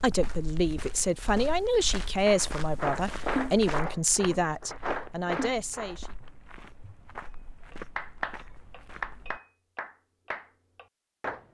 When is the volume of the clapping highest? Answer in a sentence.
The volume of the clapping peaks at 3 seconds.